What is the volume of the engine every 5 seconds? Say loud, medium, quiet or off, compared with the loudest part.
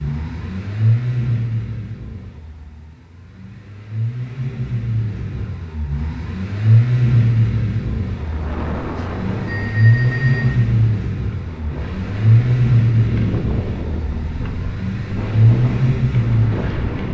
medium, loud, loud, loud.